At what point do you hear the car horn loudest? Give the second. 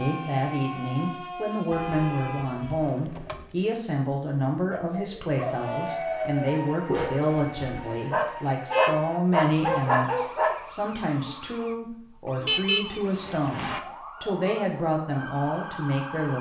13 s.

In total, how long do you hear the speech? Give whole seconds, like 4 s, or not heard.
16 s.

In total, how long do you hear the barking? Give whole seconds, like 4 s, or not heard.
6 s.